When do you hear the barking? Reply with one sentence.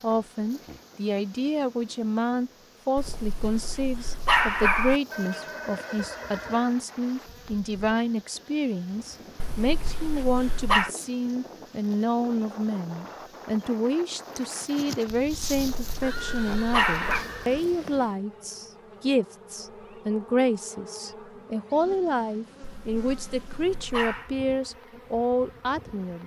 You can hear the barking from 3.0 to 5.0 s, from 9.4 to 10.9 s, from 15.7 to 17.2 s and from 22.6 to 24.3 s.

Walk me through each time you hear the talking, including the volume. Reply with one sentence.
You can hear the talking from 0.0 to 26.2 s, at a steady volume.